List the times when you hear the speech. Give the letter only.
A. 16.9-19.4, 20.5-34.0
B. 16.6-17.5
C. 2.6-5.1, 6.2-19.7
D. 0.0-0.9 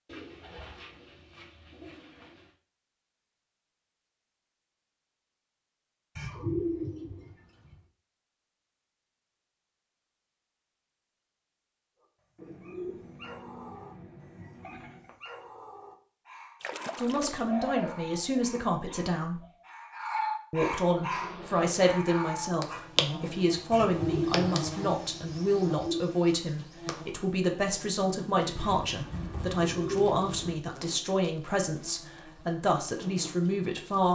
A.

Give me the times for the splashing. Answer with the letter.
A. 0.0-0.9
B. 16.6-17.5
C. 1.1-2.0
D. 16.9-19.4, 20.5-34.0
B.